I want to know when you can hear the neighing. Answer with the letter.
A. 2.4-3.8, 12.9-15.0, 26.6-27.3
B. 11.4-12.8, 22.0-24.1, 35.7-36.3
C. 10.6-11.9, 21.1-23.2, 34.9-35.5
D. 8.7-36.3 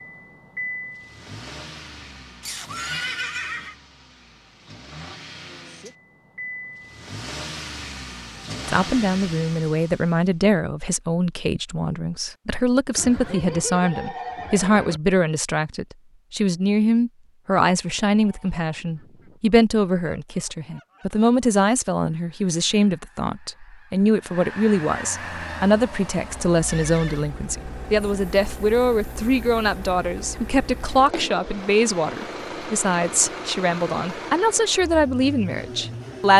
A.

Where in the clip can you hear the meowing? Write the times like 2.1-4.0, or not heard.
not heard.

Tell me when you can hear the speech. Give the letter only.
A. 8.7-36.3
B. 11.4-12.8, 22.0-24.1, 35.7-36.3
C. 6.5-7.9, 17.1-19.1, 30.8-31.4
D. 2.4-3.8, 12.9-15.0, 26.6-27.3
A.